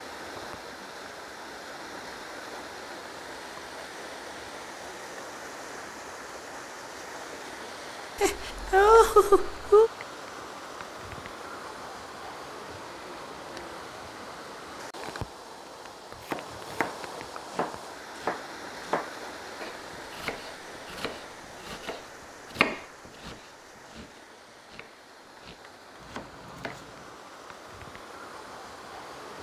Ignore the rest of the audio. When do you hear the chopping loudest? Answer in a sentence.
The loudest moment of the chopping is at 23 seconds.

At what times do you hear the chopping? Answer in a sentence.
You can hear the chopping from 15.9 to 27.1 s.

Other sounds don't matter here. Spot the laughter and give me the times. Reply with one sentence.
You can hear the laughter from 8.2 to 9.9 s.